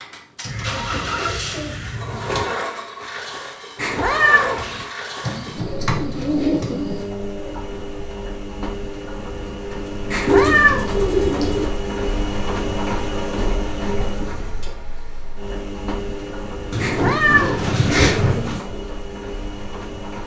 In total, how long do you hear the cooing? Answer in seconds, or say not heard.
7 s.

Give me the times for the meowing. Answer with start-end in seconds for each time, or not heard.
3.8-4.8, 10.1-10.9, 16.8-18.2.